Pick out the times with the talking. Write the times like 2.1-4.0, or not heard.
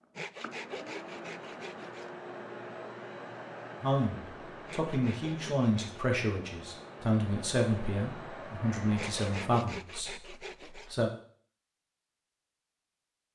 3.8-11.1.